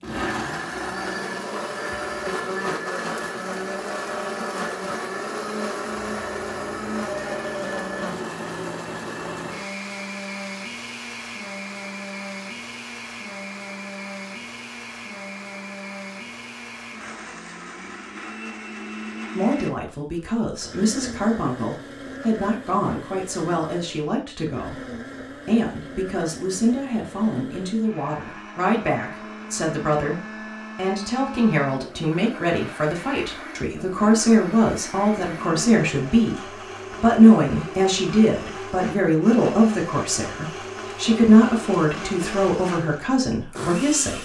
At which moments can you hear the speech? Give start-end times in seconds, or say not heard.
19.4-44.2.